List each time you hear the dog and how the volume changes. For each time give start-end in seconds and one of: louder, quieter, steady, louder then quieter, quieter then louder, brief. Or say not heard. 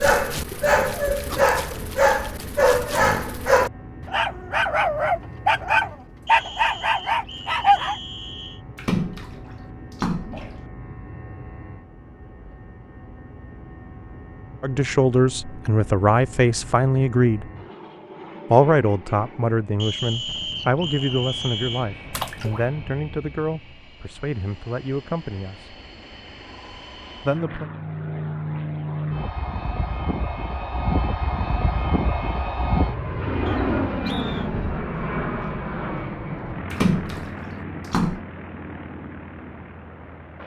0.0-8.0 steady.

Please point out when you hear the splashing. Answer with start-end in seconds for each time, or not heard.
8.8-10.6, 22.1-22.6, 36.7-38.2.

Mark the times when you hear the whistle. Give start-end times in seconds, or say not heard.
6.2-8.6, 19.8-21.9, 33.5-34.5.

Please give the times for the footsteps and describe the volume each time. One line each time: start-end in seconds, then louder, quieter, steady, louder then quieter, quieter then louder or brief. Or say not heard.
not heard.